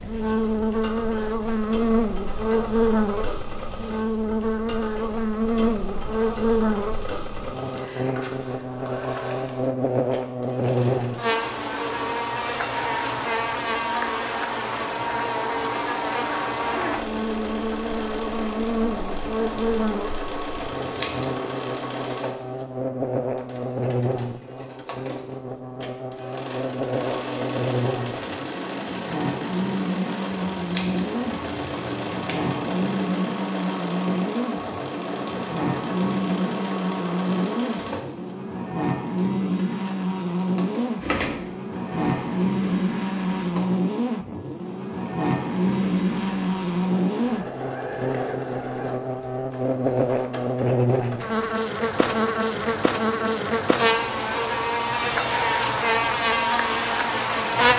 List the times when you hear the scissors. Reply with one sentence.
You can hear the scissors from 20.6 to 21.3 s and from 30.3 to 32.8 s.